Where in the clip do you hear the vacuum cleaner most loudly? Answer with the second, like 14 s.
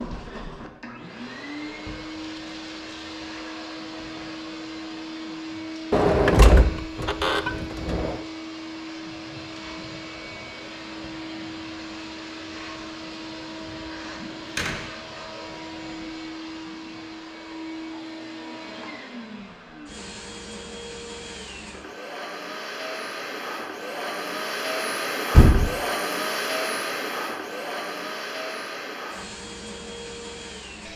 26 s.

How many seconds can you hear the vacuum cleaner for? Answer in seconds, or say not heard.
31 s.